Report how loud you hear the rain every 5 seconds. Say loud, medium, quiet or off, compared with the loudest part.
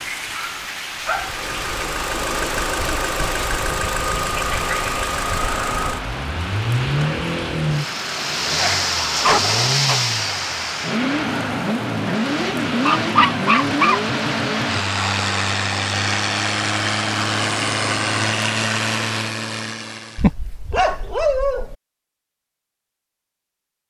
loud, loud, loud, loud, off.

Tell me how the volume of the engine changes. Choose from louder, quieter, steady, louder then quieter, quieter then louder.
steady.